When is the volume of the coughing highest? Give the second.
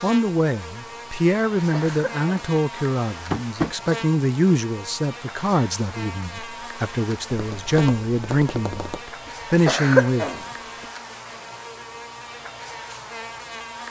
10 s.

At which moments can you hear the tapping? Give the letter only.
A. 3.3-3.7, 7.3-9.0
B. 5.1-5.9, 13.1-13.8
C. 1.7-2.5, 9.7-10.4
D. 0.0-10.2
A.